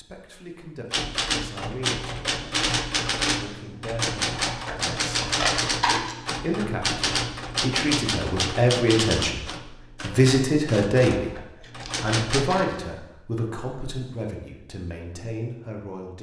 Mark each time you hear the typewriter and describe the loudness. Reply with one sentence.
The typewriter can be heard from 0.9 to 12.7 s, getting quieter.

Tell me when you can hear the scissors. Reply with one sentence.
The scissors can be heard from 4.3 to 6.3 s and from 11.2 to 12.8 s.